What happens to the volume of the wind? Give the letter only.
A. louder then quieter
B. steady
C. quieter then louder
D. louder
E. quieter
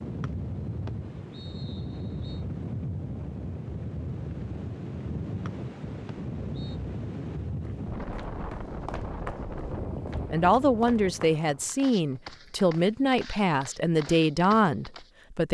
B.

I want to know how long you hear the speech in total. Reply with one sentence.
The speech can be heard for 5 seconds in total.